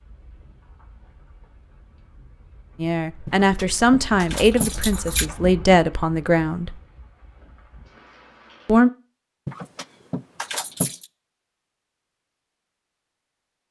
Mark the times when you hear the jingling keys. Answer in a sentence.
You can hear the jingling keys from 3.2 to 5.2 s and from 9.4 to 11.1 s.